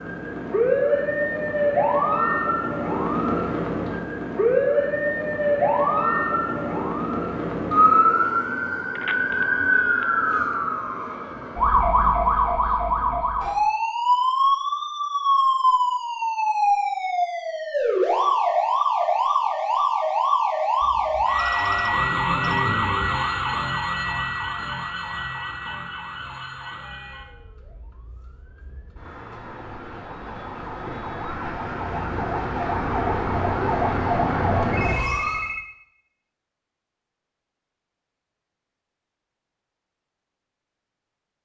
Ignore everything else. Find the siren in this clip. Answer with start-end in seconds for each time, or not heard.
0.0-35.5.